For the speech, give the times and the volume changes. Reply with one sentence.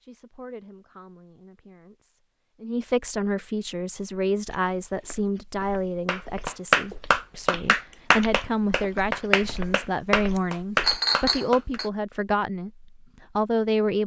The speech can be heard from 0.0 to 14.0 s, getting louder.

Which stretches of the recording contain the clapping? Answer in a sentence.
You can hear the clapping from 6.0 to 11.8 s.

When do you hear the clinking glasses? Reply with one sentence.
You can hear the clinking glasses from 10.8 to 11.9 s.